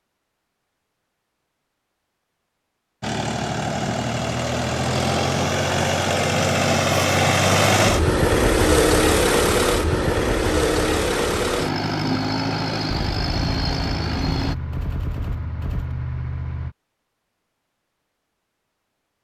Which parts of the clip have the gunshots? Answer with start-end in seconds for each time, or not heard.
12.9-16.8.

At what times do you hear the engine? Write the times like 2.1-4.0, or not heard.
3.0-14.6.